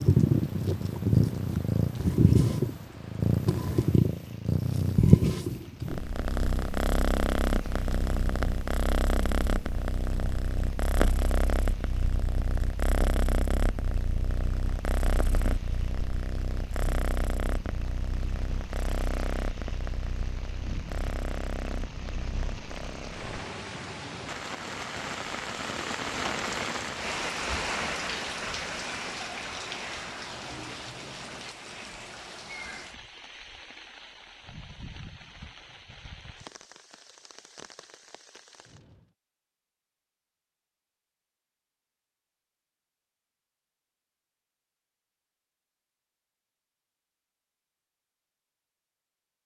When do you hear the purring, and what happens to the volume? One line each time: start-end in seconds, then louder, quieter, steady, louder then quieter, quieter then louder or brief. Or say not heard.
0.0-23.4 quieter.